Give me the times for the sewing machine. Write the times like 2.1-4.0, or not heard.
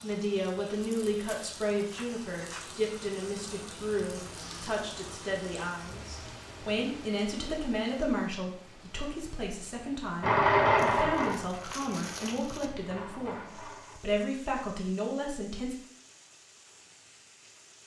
10.2-14.0.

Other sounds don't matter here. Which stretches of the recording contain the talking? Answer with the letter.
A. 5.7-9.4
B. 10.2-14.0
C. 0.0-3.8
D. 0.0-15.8
D.